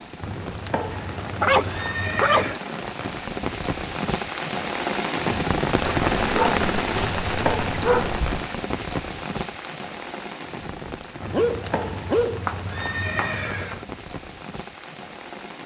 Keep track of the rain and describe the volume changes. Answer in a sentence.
The loudness of the rain goes up, then down.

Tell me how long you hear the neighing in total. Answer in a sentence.
The neighing can be heard for 6 seconds in total.